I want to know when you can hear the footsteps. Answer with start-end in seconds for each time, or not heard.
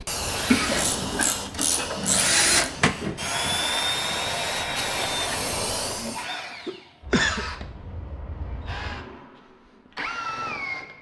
not heard.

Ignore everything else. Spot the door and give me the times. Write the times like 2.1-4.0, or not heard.
not heard.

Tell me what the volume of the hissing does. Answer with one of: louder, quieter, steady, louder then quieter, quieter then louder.
quieter then louder.